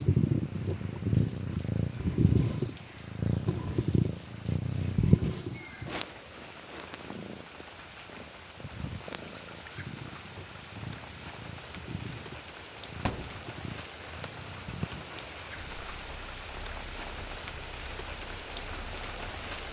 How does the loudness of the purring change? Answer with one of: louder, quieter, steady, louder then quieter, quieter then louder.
quieter.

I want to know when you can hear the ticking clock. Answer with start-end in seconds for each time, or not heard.
not heard.